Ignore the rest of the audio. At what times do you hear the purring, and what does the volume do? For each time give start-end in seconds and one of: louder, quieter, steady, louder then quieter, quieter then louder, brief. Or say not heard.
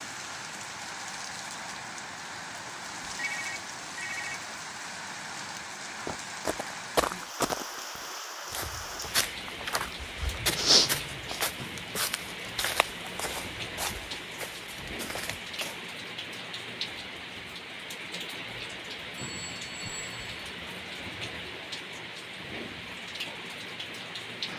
not heard.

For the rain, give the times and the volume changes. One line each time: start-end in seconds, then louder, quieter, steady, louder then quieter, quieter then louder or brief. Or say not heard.
0.0-24.5 steady.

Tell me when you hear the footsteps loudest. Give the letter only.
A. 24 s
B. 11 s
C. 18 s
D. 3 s
B.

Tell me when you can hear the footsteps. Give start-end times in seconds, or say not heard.
6.0-15.8.